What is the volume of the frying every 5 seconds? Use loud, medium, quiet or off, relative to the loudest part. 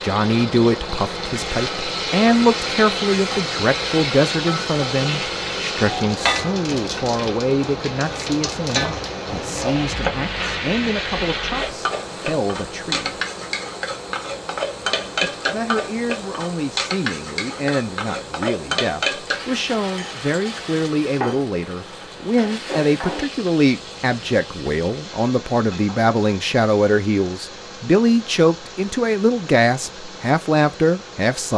loud, loud, loud, loud, medium, quiet, quiet.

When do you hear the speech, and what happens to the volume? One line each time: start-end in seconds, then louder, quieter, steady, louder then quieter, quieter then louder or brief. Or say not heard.
0.0-13.2 quieter
15.2-31.5 louder.